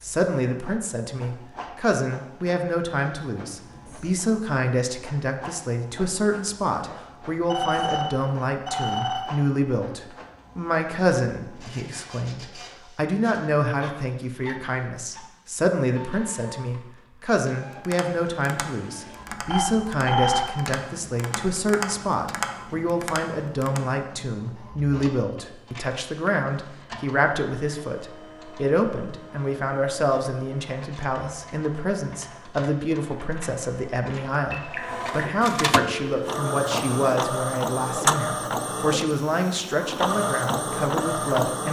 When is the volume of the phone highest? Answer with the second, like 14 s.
20 s.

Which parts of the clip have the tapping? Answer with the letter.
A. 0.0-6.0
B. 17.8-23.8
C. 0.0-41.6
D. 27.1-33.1
B.